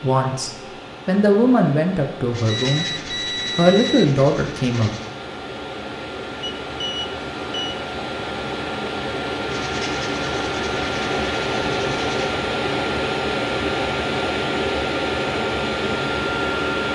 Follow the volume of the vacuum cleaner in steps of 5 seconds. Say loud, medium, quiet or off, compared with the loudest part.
quiet, medium, loud, loud.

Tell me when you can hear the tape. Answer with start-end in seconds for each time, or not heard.
not heard.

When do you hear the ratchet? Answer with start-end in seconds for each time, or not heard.
not heard.